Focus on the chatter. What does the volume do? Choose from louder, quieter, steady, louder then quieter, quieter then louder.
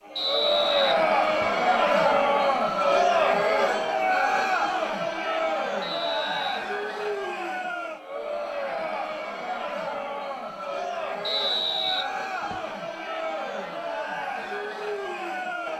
quieter.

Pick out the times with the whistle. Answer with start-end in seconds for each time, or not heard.
0.1-1.6, 5.8-6.6, 11.2-12.7.